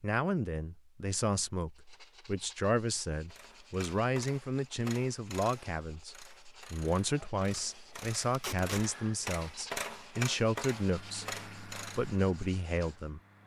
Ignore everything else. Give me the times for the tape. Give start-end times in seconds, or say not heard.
8.3-8.8.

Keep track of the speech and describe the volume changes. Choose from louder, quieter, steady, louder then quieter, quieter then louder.
steady.